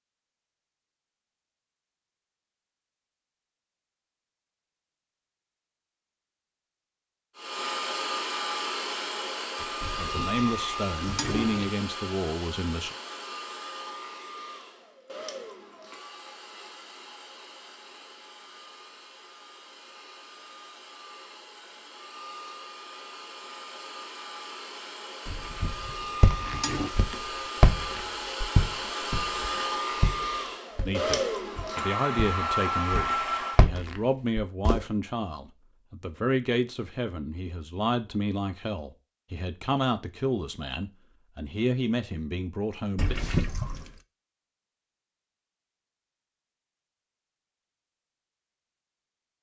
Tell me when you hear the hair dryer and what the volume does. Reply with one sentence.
The hair dryer can be heard from 7.3 to 33.7 s, getting quieter then louder.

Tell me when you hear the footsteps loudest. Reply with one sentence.
The volume of the footsteps peaks at 28 seconds.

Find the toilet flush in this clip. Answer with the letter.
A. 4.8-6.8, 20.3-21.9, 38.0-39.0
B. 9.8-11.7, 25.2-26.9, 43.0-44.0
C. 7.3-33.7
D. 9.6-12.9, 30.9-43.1
B.